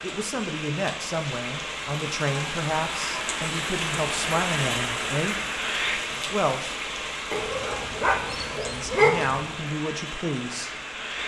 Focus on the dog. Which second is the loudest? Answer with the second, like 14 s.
9 s.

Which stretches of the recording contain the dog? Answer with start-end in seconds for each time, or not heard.
7.3-9.6.